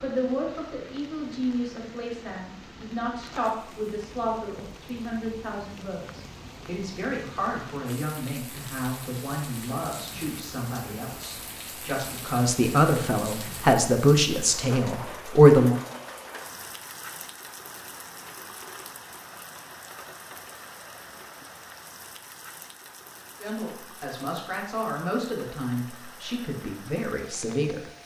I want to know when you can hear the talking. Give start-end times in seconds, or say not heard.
0.0-15.8, 23.4-27.8.